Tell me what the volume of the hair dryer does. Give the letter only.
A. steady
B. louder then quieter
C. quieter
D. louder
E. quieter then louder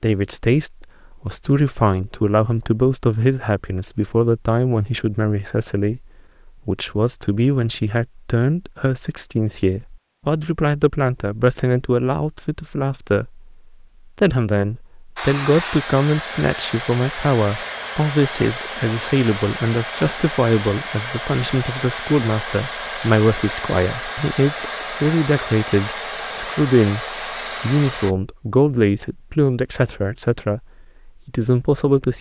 A.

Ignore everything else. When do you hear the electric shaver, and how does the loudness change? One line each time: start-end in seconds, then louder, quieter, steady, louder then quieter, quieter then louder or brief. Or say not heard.
not heard.